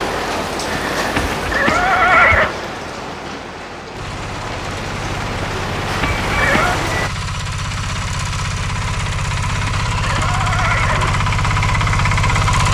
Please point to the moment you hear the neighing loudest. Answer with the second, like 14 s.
2 s.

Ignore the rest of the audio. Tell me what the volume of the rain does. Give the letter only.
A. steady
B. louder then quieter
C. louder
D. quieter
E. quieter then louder
E.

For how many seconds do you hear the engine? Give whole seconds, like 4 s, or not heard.
9 s.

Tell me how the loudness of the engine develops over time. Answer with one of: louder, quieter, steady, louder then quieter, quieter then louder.
louder.